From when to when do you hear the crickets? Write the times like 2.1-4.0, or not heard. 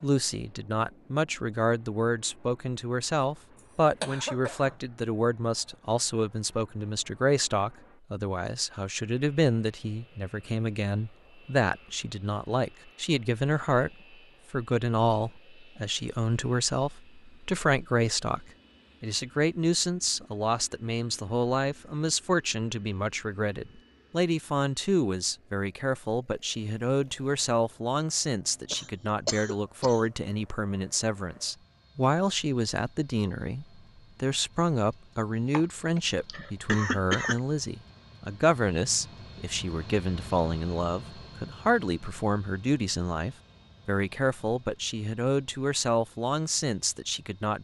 not heard.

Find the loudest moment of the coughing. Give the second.
37 s.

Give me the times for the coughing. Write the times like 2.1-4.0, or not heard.
4.0-4.8, 28.7-30.1, 35.5-37.4.